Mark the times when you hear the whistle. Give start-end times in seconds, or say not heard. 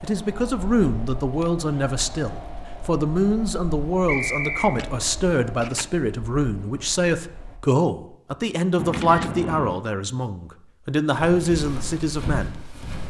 4.0-4.8.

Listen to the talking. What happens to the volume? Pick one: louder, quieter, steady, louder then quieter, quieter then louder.
steady.